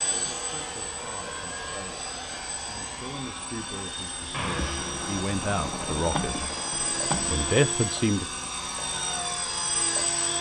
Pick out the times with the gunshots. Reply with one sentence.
You can hear the gunshots from 4.3 to 7.5 s.